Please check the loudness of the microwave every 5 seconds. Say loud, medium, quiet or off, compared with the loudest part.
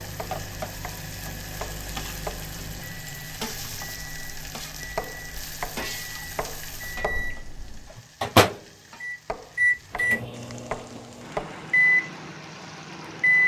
quiet, loud, loud.